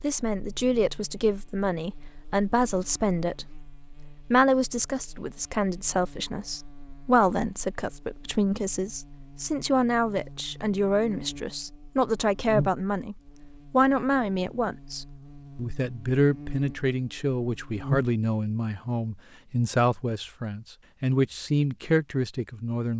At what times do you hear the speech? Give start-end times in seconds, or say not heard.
0.0-3.5, 4.3-22.9.